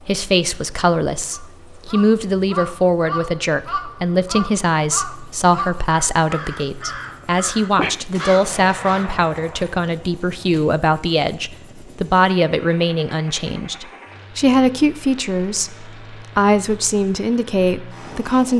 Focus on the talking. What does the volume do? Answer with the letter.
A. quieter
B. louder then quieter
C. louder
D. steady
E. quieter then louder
D.